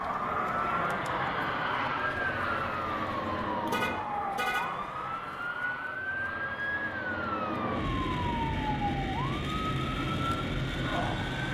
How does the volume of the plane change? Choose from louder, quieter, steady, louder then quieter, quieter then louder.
quieter then louder.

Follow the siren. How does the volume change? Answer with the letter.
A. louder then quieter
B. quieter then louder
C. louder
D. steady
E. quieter
D.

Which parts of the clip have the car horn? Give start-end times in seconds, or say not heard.
3.6-4.7.